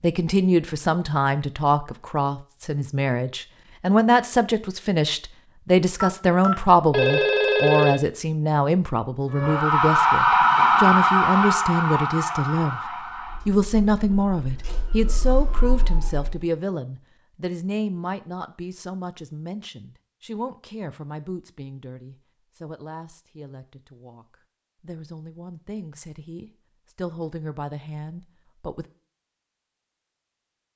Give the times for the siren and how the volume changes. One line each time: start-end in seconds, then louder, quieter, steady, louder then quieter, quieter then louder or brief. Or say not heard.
9.3-16.4 quieter then louder.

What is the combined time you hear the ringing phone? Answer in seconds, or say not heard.
2 s.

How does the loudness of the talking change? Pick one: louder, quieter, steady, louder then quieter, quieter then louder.
quieter.